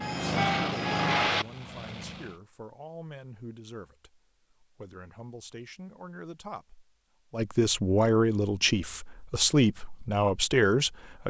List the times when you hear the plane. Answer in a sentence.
The plane can be heard from 0.0 to 2.4 s.